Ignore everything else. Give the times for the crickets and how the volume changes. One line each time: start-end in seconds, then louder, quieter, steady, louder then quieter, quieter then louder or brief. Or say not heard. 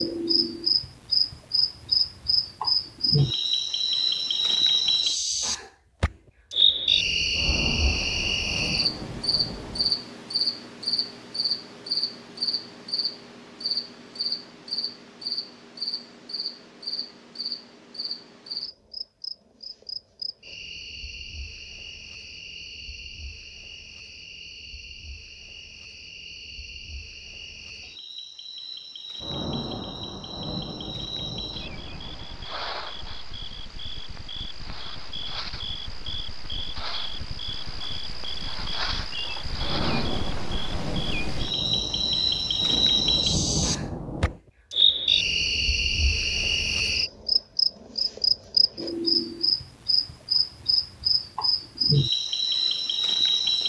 0.0-53.6 quieter then louder.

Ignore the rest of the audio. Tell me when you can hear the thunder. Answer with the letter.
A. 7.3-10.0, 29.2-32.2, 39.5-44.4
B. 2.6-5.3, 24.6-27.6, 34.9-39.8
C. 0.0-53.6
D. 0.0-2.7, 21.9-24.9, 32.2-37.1
A.